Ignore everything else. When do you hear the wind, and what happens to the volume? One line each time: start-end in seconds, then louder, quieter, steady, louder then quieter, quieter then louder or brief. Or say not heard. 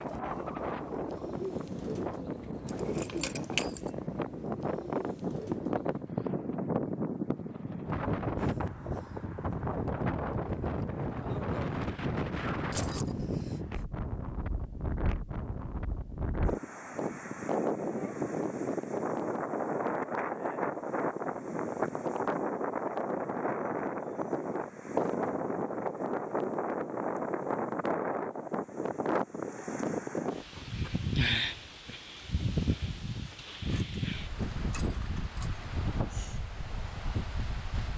0.0-37.9 steady.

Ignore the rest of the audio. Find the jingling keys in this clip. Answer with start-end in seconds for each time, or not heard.
2.6-3.9, 12.7-13.2, 33.2-35.6.